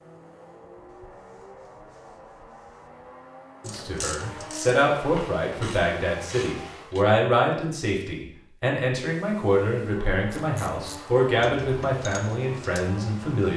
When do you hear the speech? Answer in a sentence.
You can hear the speech from 3.6 to 13.5 s.